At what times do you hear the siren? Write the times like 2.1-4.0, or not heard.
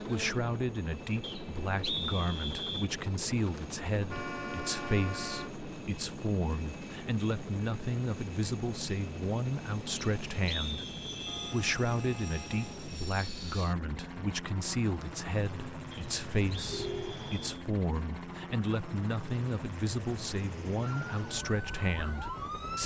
20.8-22.8.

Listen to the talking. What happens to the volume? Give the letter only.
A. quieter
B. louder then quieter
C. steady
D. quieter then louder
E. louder
C.